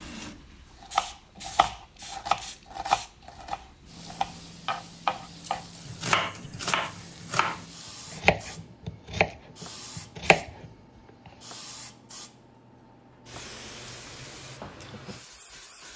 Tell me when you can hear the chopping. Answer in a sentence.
You can hear the chopping from 0.9 to 11.3 s.